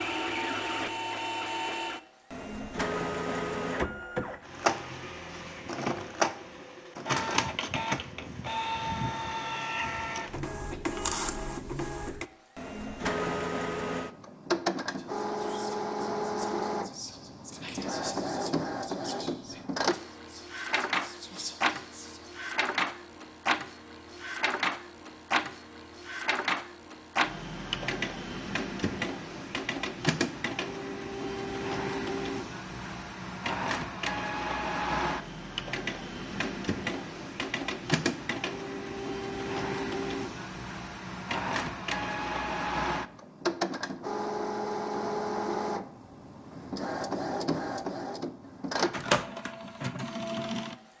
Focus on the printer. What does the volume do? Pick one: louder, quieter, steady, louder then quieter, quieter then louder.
steady.